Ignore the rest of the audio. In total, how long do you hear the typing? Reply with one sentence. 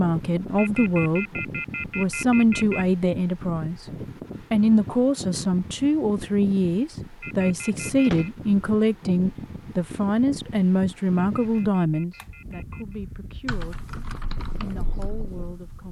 The typing can be heard for 2 seconds in total.